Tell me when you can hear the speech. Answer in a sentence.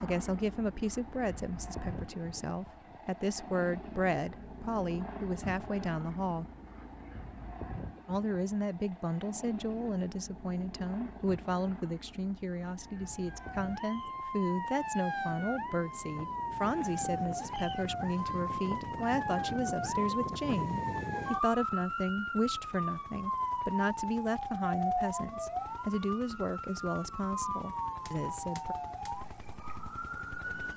You can hear the speech from 0.0 to 6.5 s and from 8.1 to 28.8 s.